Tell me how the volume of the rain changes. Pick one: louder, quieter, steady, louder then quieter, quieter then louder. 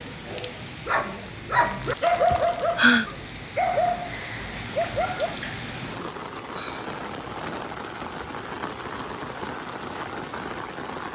louder.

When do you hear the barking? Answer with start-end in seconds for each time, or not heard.
0.2-6.2.